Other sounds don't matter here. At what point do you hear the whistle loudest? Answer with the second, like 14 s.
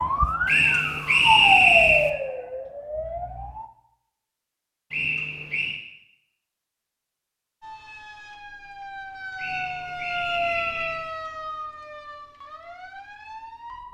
2 s.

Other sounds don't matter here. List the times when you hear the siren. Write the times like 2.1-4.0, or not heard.
0.0-3.7, 7.6-13.8.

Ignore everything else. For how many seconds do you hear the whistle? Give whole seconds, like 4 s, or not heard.
4 s.